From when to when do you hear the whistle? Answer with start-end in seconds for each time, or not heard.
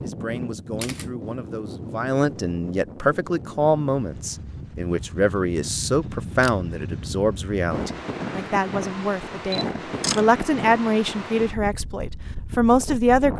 not heard.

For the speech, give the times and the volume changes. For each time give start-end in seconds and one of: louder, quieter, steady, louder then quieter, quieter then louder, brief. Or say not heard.
0.0-13.3 louder.